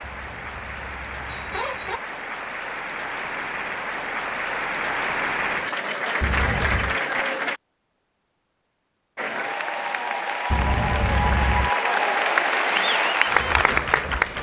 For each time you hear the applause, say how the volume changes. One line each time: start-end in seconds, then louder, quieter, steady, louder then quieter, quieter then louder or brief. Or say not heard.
0.0-7.6 louder
9.2-14.3 louder.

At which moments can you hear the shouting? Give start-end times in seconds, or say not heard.
not heard.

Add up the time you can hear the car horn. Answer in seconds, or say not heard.
4 s.